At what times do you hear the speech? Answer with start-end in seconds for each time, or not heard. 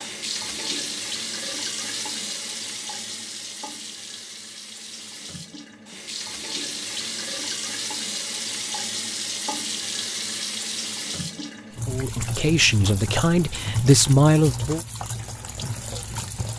11.8-14.8.